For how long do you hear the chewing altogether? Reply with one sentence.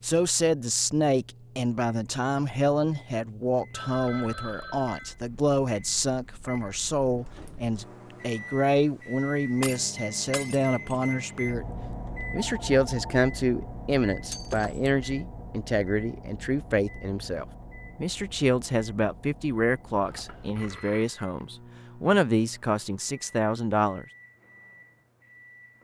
You can't hear the chewing here.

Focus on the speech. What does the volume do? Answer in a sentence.
The volume of the speech stays about the same.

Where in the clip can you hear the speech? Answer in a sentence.
You can hear the speech from 0.0 to 11.7 s and from 12.3 to 24.1 s.